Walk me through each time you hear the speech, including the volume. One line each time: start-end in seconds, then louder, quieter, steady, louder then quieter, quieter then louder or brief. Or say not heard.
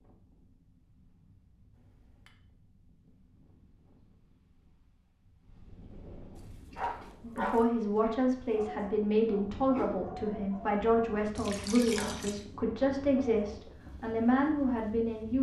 7.2-15.3 steady.